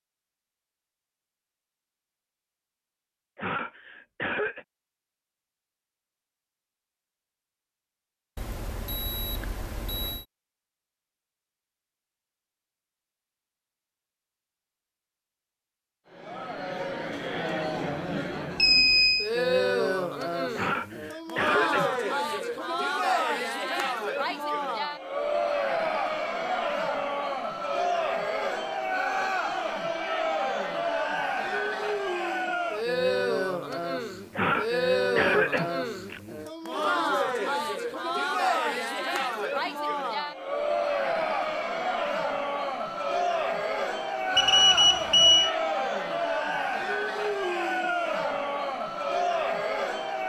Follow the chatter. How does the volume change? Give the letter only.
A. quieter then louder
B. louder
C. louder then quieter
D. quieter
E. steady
E.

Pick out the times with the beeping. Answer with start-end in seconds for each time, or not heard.
8.3-10.2, 18.6-19.3, 44.4-45.5.